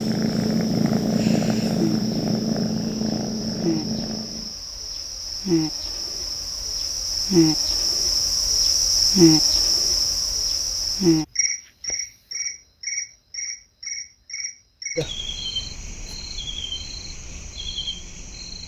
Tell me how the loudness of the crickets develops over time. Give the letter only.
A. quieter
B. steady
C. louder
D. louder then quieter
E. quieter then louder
D.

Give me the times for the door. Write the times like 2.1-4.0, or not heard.
not heard.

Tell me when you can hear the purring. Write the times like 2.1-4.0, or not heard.
0.0-4.5.